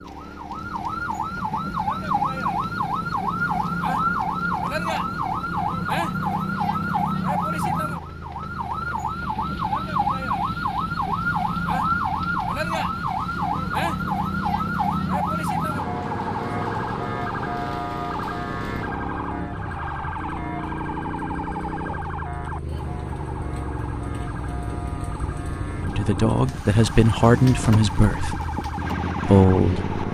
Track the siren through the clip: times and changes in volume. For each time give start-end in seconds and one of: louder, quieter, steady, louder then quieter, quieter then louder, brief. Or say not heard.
0.0-30.1 quieter.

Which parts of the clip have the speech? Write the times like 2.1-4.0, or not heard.
25.9-28.4, 29.2-29.9.